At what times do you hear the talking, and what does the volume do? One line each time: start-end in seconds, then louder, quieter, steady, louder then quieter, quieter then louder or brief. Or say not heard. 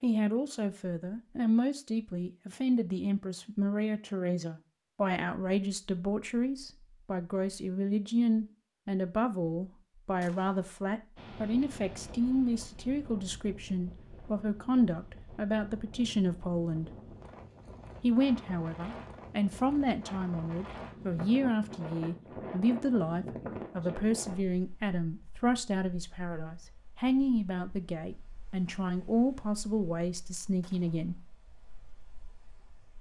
0.0-16.9 steady
18.0-31.1 steady.